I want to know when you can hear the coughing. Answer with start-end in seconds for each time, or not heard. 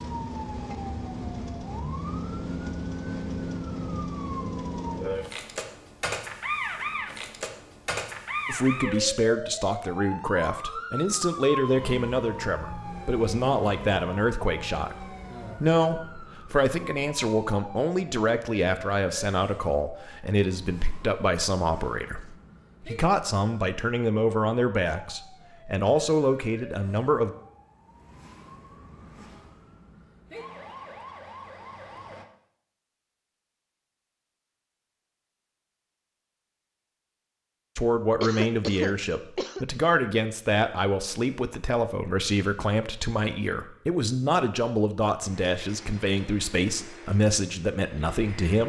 38.2-39.6.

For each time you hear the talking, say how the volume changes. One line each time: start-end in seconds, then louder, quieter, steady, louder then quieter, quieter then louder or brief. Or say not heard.
8.4-27.4 steady
37.8-48.6 steady.